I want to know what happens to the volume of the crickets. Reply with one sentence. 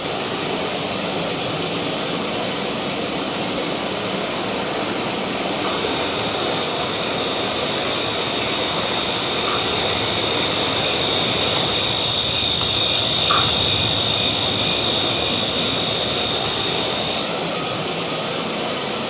The volume of the crickets goes up.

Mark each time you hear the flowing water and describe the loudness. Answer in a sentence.
You can hear the flowing water from 0.0 to 19.0 s, at a steady volume.